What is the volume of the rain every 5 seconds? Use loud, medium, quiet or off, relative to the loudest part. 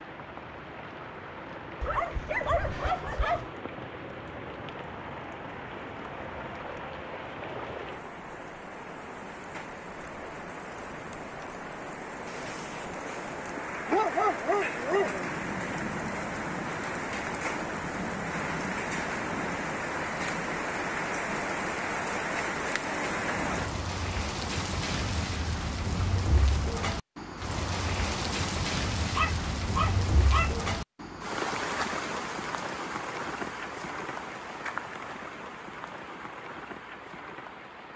medium, medium, medium, loud, loud, loud, loud, medium.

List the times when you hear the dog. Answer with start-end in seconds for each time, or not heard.
1.8-3.5, 13.8-15.3, 29.1-30.6.